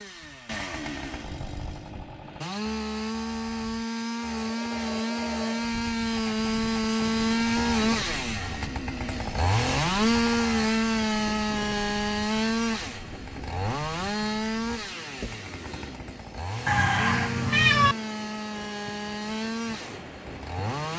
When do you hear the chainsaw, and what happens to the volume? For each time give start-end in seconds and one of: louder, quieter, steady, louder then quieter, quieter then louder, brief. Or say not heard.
0.0-20.9 louder then quieter.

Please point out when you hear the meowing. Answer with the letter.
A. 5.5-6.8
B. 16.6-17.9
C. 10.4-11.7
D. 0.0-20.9
B.